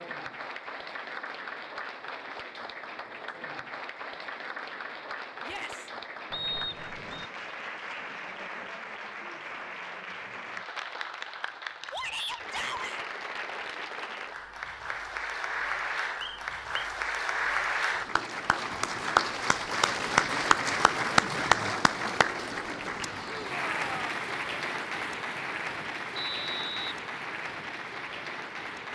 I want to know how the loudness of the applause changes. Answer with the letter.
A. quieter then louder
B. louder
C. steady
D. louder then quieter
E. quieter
D.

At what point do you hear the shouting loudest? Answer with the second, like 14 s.
12 s.